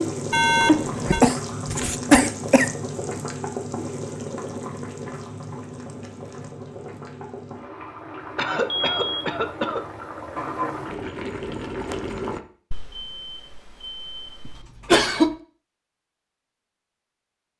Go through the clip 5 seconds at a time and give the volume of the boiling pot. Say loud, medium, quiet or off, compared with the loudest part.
loud, medium, loud, off.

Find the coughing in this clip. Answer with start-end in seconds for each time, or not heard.
0.7-2.7, 8.3-9.8, 14.4-15.3.